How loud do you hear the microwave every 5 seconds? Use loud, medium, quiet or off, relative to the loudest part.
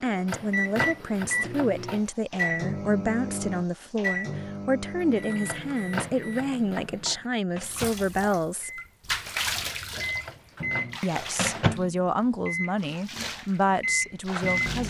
loud, medium, loud.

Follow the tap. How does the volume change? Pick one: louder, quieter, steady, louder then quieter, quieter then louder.
quieter then louder.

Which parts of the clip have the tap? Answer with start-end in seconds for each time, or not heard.
7.7-14.8.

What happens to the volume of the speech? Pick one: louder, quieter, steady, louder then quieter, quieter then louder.
steady.